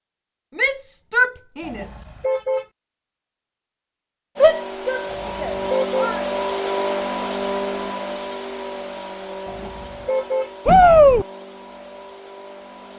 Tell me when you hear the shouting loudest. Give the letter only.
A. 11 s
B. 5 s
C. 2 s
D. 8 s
A.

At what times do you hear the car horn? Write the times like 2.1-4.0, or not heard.
1.6-2.6, 5.0-6.1, 9.4-10.5.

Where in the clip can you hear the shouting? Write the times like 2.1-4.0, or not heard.
0.6-2.0, 4.4-6.2, 10.7-11.2.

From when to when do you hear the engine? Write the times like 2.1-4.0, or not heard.
4.3-12.9.